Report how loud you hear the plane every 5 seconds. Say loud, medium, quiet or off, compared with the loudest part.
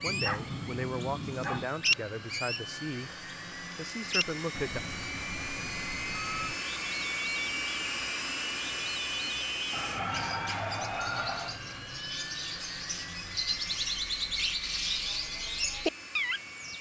medium, loud, medium, medium.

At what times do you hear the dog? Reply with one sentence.
The dog can be heard from 0.1 to 1.7 s and from 9.7 to 11.6 s.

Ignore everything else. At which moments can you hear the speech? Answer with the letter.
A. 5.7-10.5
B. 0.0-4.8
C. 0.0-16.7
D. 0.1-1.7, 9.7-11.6
B.